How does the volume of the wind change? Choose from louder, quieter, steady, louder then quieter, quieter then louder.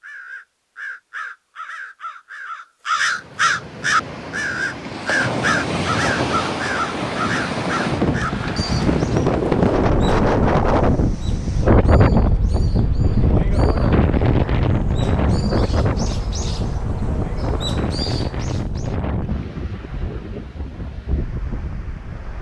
louder then quieter.